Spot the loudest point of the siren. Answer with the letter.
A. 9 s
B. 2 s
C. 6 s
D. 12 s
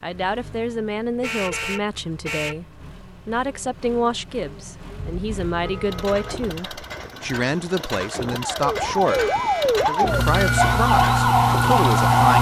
D.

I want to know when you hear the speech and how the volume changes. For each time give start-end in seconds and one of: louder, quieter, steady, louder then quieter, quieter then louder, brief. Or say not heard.
0.0-12.3 steady.